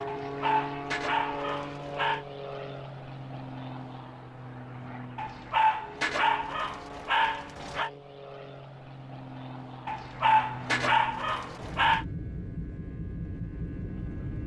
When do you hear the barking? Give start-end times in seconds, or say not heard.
0.1-2.2, 5.2-7.9, 9.8-12.1.